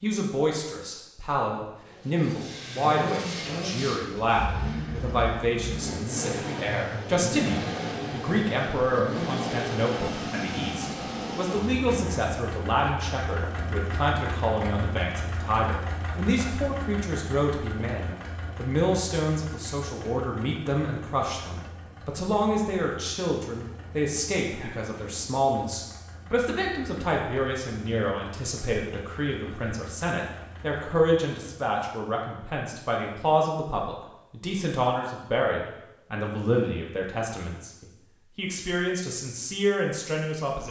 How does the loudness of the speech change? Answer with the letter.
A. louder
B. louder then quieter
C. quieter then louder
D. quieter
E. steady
E.